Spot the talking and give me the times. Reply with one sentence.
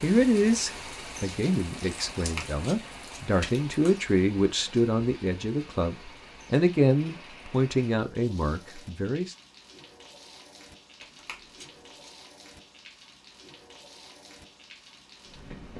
You can hear the talking from 0.0 to 9.3 s.